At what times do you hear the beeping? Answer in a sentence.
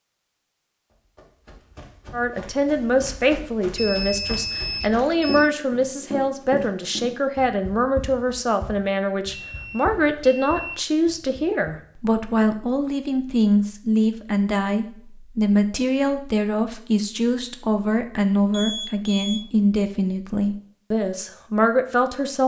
The beeping can be heard from 3.8 to 5.5 s, from 9.3 to 10.8 s and from 18.5 to 19.4 s.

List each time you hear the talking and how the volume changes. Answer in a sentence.
The talking can be heard from 2.1 to 22.4 s, at a steady volume.